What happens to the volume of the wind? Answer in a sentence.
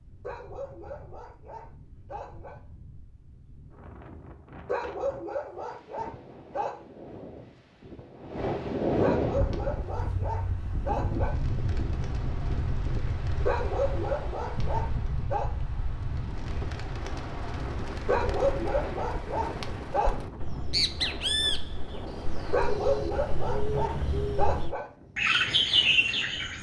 The volume of the wind goes up, then down.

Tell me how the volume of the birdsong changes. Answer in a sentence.
The loudness of the birdsong goes up.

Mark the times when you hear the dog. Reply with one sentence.
You can hear the dog from 0.2 to 2.6 s, from 4.7 to 6.8 s, from 9.0 to 11.3 s, from 13.4 to 15.5 s, from 18.1 to 20.1 s and from 22.5 to 24.9 s.